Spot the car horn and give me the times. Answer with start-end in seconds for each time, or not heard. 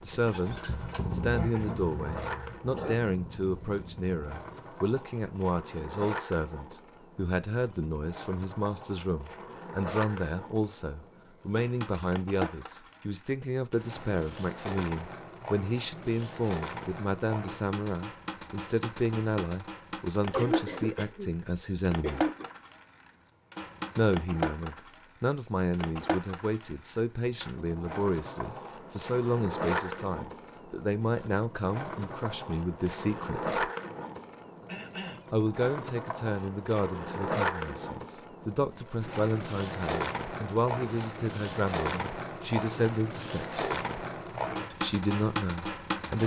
not heard.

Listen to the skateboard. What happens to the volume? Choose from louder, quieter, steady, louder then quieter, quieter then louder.
louder.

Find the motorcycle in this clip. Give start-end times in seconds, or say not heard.
0.0-4.7.